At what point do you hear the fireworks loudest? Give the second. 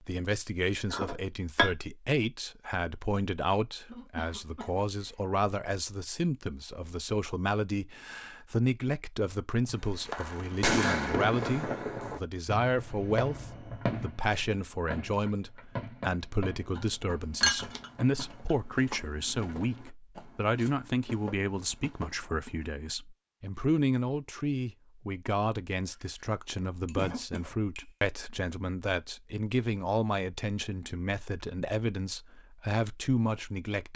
11 s.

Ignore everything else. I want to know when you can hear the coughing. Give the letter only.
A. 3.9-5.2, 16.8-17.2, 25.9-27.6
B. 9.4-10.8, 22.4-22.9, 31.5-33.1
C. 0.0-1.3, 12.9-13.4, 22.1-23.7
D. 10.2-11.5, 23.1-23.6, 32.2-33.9
A.